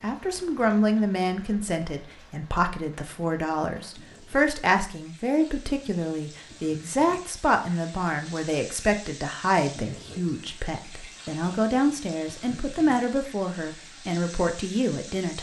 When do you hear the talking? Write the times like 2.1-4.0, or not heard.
0.0-15.3.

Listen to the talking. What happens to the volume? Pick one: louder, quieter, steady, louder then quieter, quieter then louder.
steady.